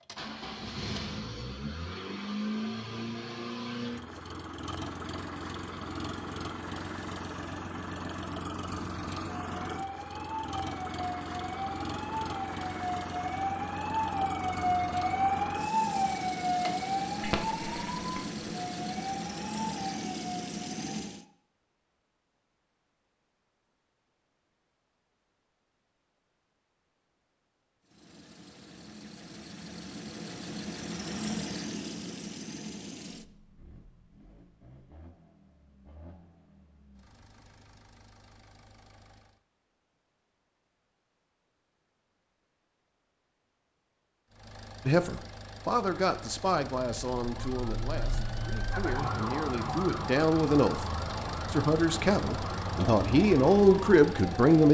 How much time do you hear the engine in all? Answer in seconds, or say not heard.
43 s.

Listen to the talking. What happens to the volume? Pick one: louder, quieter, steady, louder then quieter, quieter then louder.
quieter then louder.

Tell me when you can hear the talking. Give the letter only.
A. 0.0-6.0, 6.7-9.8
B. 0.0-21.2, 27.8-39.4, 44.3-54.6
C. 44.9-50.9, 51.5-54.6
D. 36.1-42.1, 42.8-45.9
C.